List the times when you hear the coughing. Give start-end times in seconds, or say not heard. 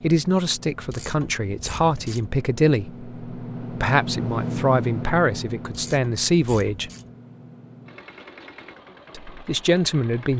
not heard.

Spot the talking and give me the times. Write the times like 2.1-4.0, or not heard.
0.0-6.9, 9.2-10.3.